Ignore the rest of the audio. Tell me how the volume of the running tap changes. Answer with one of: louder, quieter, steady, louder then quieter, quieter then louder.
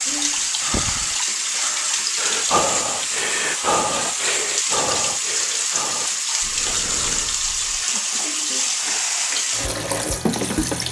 steady.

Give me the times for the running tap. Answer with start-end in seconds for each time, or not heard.
0.0-10.8.